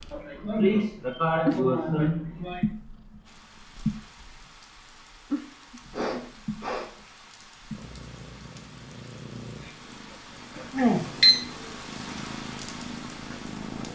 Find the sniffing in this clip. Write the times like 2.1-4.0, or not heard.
0.1-2.6, 5.9-6.8, 9.6-11.1.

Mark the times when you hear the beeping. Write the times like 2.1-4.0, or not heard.
10.8-11.4.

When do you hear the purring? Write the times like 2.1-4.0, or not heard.
0.0-13.9.